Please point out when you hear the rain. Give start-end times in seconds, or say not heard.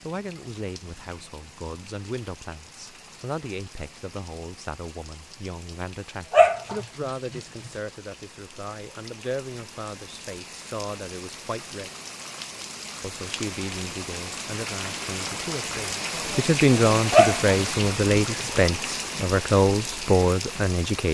0.0-21.1.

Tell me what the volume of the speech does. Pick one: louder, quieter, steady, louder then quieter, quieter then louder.
louder.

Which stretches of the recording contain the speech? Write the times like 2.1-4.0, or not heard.
0.0-11.9, 13.0-21.1.